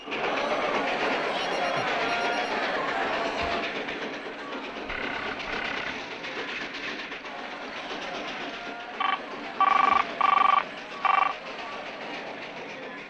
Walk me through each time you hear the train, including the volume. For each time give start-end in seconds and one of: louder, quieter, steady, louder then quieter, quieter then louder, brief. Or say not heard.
0.0-13.0 quieter.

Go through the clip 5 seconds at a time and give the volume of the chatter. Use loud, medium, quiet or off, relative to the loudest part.
loud, medium, medium.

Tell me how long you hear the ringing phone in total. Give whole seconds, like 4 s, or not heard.
5 s.